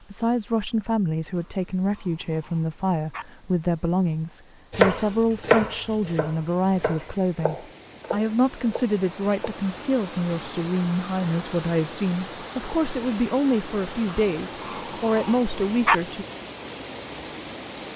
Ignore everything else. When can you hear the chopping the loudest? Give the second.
5 s.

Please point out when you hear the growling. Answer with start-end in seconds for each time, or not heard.
1.4-3.2, 14.1-16.0.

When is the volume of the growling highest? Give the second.
16 s.